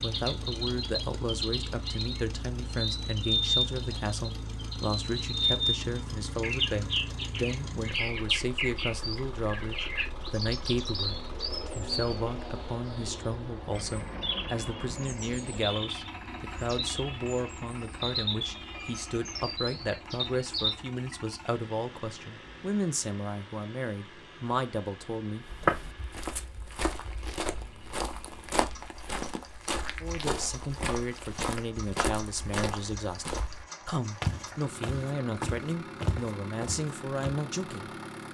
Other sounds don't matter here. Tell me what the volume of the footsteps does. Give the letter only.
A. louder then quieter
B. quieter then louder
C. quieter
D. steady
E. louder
D.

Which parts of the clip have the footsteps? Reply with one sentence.
You can hear the footsteps from 25.4 to 37.4 s.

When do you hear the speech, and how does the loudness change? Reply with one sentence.
You can hear the speech from 0.0 to 25.4 s, at a steady volume; and from 30.0 to 37.9 s, at a steady volume.